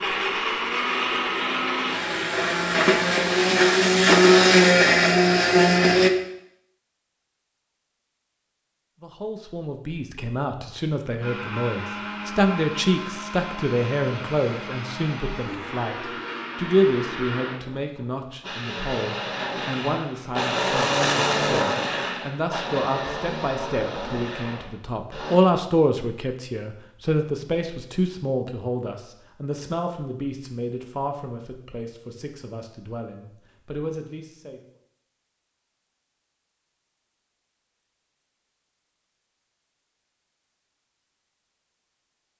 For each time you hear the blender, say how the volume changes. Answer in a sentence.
You can hear the blender from 0.0 to 6.1 s, getting louder; and from 11.2 to 25.4 s, getting louder then quieter.